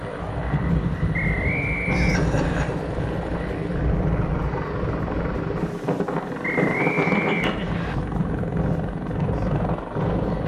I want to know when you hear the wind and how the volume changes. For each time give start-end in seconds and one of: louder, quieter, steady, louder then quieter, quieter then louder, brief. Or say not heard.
0.0-10.4 steady.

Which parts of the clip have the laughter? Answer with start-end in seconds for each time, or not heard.
1.9-2.7, 7.0-7.9.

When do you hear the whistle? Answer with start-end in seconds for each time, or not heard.
1.1-2.6, 6.4-8.0.